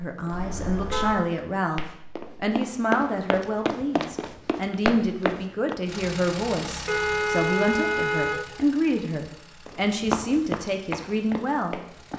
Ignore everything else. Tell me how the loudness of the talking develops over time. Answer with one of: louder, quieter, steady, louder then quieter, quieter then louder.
steady.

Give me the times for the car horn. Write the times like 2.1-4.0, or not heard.
0.3-1.2, 6.8-8.5.